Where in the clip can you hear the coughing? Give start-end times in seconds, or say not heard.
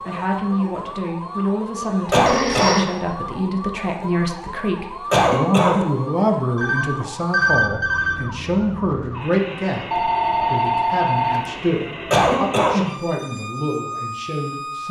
2.1-2.9, 5.1-5.8, 12.1-12.8.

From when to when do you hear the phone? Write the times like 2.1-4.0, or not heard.
2.2-2.9, 6.5-8.2, 9.9-11.6.